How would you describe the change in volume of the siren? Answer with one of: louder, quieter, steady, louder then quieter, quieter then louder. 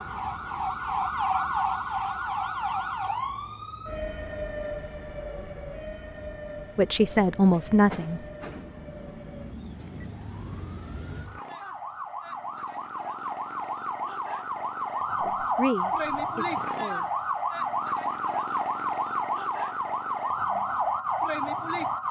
quieter then louder.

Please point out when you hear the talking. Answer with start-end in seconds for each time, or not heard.
6.8-8.2, 15.2-17.1.